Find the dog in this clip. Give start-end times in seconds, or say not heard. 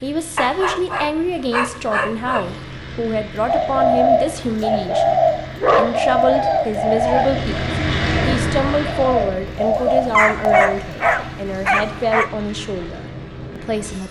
0.3-2.5, 5.6-7.3, 9.8-12.3.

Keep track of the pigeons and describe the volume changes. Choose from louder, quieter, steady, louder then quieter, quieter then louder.
quieter then louder.